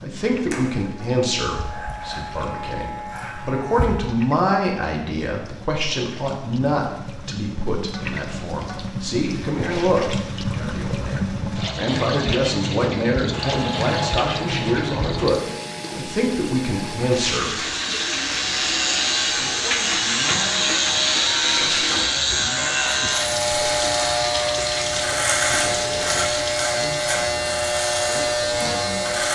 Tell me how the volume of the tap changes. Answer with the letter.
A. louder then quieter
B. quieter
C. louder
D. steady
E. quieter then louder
C.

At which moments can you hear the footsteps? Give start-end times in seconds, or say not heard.
not heard.